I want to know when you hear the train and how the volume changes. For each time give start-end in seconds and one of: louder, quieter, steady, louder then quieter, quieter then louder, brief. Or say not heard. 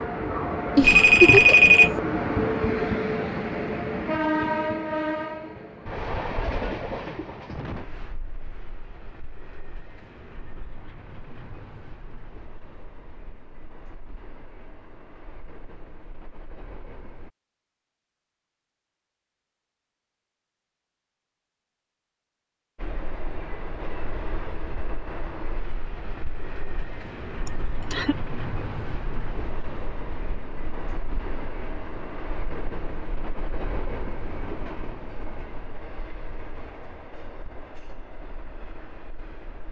0.0-17.3 quieter
22.8-39.6 quieter.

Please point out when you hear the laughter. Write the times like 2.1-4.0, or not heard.
0.8-1.7, 27.4-28.1.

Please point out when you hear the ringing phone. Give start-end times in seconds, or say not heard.
0.8-2.0.